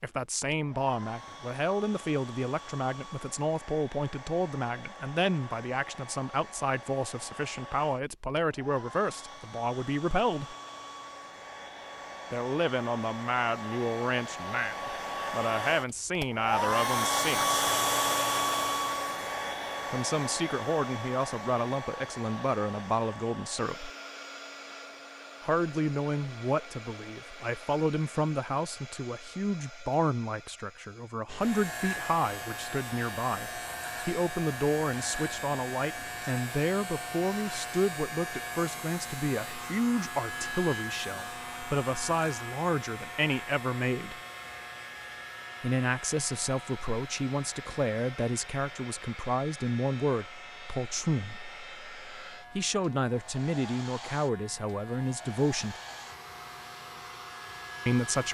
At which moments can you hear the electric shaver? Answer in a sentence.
The electric shaver can be heard from 31.2 to 58.2 s.